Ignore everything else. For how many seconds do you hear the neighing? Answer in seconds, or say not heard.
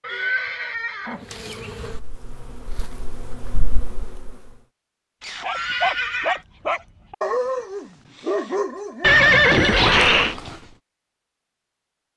4 s.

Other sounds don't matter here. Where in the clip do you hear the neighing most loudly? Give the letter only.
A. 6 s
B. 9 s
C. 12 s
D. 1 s
B.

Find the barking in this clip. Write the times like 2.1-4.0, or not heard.
5.4-10.8.